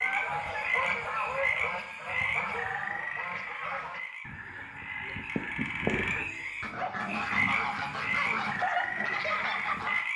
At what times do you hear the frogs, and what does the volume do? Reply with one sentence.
You can hear the frogs from 0.0 to 10.1 s, getting quieter then louder.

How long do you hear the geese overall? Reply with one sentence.
You can hear the geese for 10 seconds altogether.